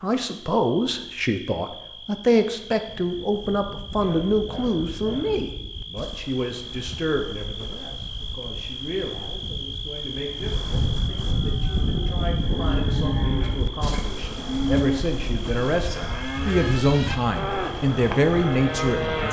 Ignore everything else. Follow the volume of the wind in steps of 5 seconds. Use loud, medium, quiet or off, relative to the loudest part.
quiet, quiet, loud, medium.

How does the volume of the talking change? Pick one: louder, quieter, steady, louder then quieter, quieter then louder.
quieter then louder.